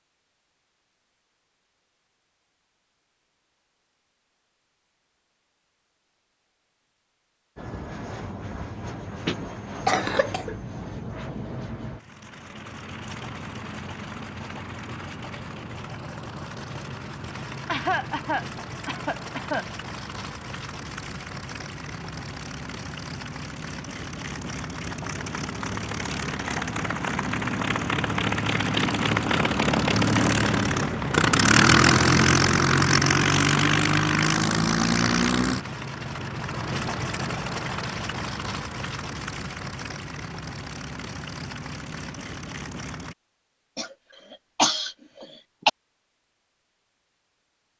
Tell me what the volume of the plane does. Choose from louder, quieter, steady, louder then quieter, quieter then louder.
louder then quieter.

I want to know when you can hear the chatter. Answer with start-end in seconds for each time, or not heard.
not heard.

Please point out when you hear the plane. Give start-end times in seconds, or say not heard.
7.5-43.1.